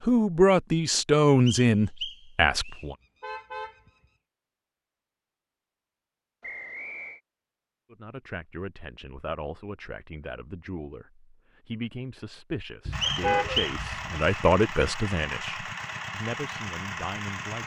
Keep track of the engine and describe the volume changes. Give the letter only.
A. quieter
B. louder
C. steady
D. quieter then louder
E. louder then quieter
C.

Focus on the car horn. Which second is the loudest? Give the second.
13 s.